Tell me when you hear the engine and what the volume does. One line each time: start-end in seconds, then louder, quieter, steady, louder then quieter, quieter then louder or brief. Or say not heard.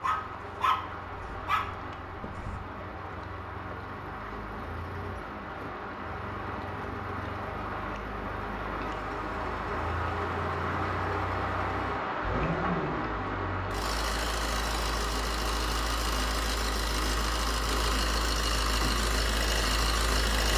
0.0-20.5 louder.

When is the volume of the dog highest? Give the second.
1 s.